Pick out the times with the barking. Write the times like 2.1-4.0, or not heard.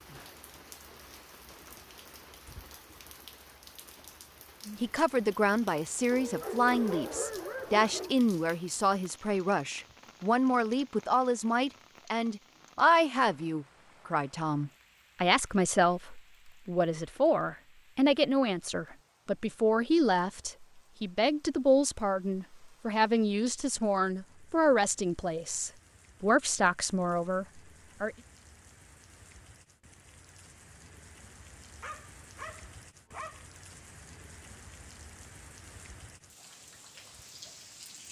6.1-8.2, 31.8-33.5.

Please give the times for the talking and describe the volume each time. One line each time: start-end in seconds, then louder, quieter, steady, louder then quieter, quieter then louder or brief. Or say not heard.
4.8-28.1 steady.